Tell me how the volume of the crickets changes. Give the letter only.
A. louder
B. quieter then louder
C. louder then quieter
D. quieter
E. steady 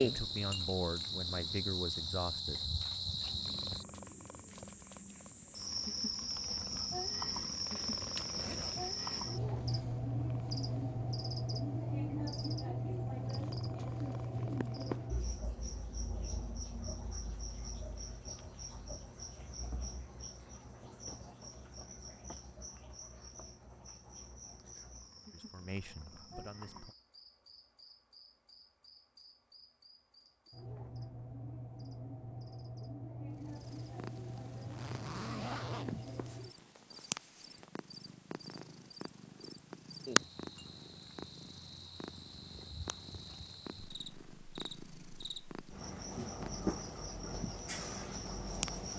B.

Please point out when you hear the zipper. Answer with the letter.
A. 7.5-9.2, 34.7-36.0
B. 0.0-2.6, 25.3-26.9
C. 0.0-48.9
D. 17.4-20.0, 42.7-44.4
A.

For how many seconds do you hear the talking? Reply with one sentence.
You can hear the talking for 4 seconds altogether.